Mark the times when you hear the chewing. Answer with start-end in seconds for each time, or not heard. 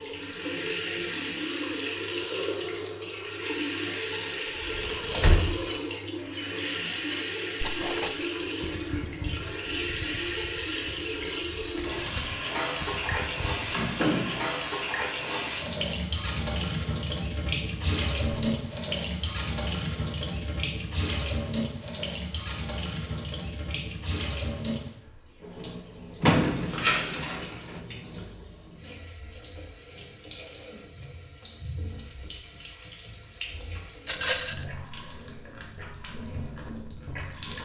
not heard.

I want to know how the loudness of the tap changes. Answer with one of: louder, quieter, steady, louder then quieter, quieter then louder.
quieter.